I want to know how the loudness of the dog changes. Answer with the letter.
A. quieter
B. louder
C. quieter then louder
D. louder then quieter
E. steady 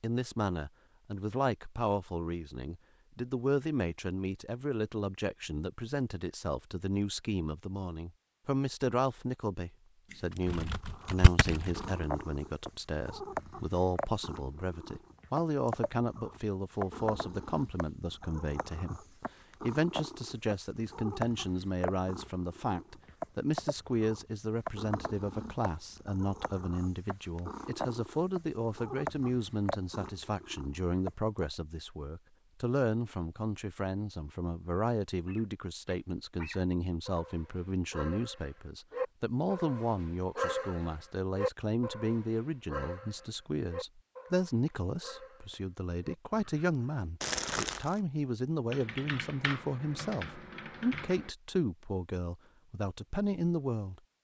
D.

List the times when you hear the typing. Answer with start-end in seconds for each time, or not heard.
10.1-12.1, 48.7-51.4.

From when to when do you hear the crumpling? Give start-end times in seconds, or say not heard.
47.2-48.0.